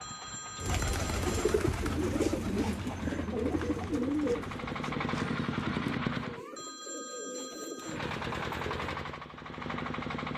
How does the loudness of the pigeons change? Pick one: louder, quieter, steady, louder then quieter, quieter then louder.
quieter.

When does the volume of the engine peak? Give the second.
6 s.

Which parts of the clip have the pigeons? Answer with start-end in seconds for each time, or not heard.
0.6-8.9.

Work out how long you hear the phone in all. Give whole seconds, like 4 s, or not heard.
3 s.